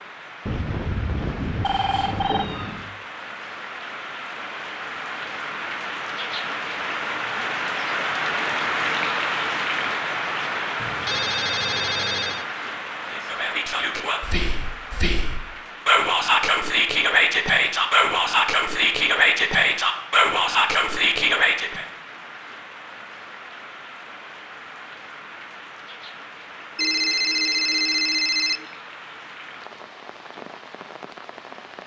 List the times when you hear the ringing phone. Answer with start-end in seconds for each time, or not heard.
0.5-2.5, 10.8-12.4, 26.8-28.6.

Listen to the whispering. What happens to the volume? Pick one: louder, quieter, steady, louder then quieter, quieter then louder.
louder.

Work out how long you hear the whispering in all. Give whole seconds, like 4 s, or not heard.
9 s.